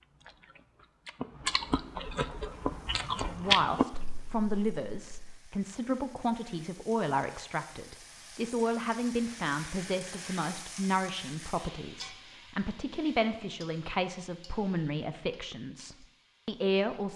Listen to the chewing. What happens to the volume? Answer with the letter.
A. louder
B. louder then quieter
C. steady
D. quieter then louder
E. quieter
B.